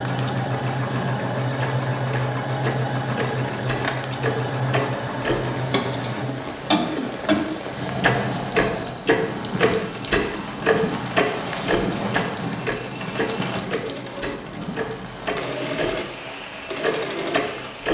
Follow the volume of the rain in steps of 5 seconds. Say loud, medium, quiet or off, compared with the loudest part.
medium, loud, loud, medium.